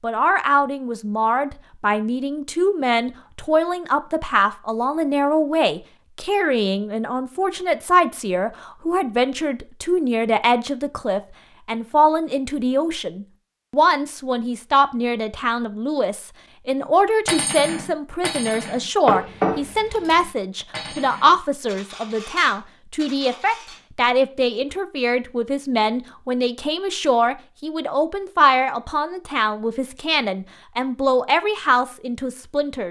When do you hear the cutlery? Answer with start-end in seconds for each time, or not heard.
17.2-23.8.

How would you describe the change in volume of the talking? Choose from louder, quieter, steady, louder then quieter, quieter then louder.
steady.